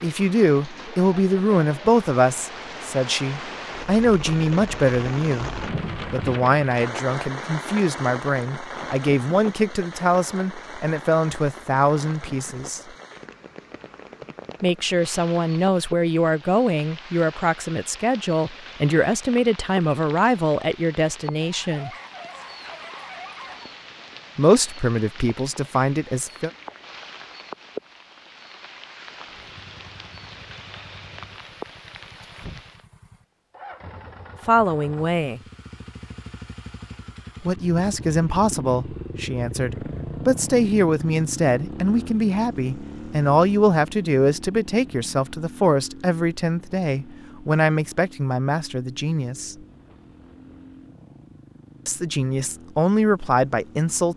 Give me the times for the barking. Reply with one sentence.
The barking can be heard from 21.4 to 23.7 s.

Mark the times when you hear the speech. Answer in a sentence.
The speech can be heard from 0.0 to 12.8 s, from 14.6 to 21.9 s, from 24.4 to 26.5 s, from 34.5 to 35.4 s, from 37.4 to 49.5 s and from 51.9 to 54.1 s.